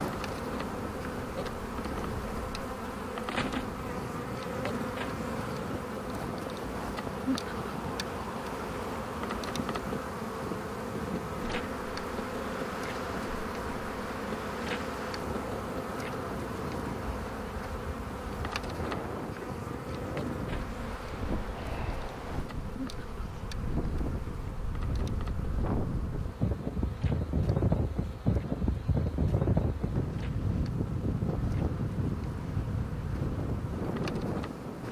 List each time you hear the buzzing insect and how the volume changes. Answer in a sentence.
The buzzing insect can be heard from 0.0 to 34.8 s, getting quieter.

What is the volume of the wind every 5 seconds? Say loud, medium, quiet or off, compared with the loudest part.
medium, medium, medium, medium, medium, loud, loud.